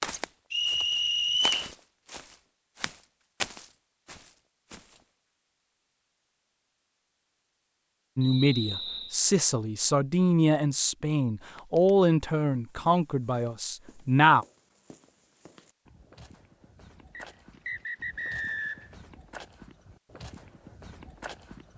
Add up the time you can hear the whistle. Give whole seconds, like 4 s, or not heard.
4 s.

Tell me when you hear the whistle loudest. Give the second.
1 s.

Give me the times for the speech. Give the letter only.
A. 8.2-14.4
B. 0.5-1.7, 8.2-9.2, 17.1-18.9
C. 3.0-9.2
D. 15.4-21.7
A.